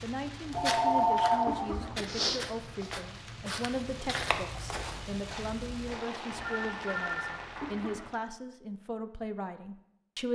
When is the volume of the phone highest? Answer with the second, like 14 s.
1 s.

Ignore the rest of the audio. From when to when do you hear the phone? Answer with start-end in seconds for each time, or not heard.
0.5-1.8, 6.4-8.1.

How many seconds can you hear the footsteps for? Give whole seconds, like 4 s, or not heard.
6 s.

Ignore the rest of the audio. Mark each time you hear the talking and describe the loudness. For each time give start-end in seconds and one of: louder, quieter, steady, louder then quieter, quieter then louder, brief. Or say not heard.
0.0-10.2 steady.